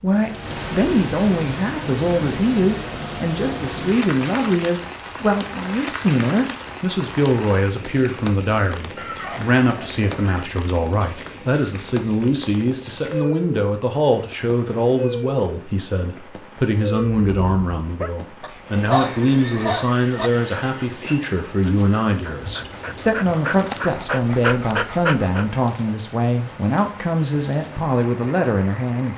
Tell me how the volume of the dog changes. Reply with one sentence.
The volume of the dog goes down, then up.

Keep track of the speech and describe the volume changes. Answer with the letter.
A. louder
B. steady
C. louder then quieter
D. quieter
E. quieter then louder
B.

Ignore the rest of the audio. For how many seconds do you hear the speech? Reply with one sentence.
You can hear the speech for 29 seconds altogether.